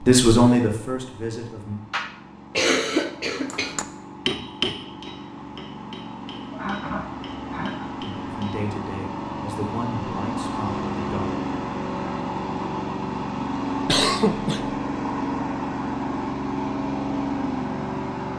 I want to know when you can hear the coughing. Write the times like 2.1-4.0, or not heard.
1.9-3.8, 6.5-7.9, 13.8-14.8.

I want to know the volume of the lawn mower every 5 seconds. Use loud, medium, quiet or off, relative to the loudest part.
quiet, medium, loud, loud.